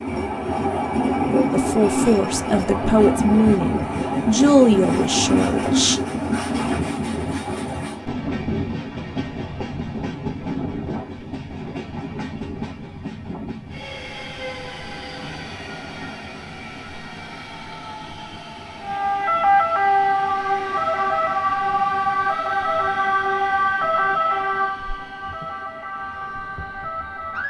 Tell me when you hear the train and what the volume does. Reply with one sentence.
The train can be heard from 0.0 to 27.4 s, getting quieter.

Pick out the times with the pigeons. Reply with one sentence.
The pigeons can't be heard in this clip.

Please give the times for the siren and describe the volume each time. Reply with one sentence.
The siren can be heard from 18.8 to 27.4 s, getting quieter.